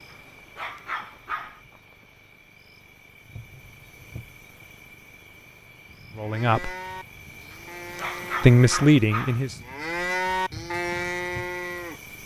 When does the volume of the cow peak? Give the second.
10 s.